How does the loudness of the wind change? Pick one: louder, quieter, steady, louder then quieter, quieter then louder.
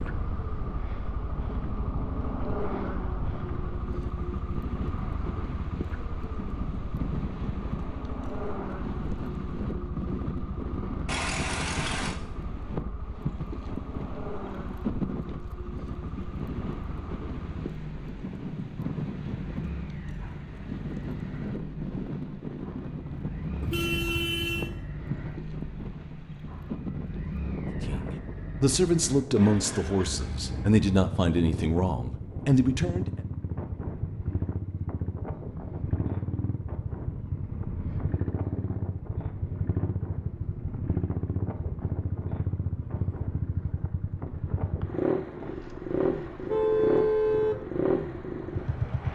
quieter.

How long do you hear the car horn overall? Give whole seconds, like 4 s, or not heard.
3 s.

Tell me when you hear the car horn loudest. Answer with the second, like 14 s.
47 s.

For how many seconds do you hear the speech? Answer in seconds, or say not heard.
5 s.